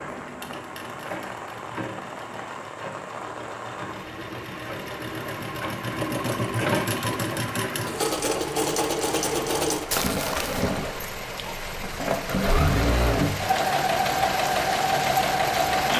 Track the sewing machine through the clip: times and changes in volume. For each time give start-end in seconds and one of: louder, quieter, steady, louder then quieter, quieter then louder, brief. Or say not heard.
0.0-15.9 louder.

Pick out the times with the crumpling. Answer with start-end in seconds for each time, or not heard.
9.9-10.7.